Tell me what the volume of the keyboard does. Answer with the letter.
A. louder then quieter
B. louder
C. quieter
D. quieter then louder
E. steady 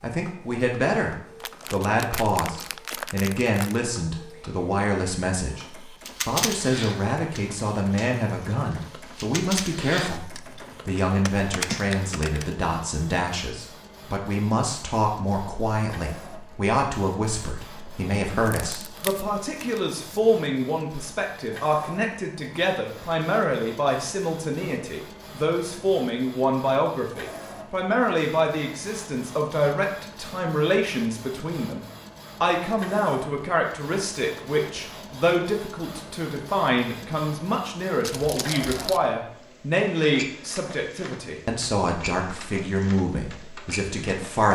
D.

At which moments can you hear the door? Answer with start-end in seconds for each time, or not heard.
not heard.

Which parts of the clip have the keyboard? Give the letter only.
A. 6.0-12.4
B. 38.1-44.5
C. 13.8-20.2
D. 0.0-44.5
A.